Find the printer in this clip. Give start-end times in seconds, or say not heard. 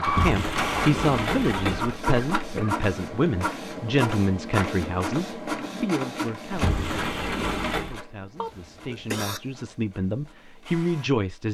0.0-11.4.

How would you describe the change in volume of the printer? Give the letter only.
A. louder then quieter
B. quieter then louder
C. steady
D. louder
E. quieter
E.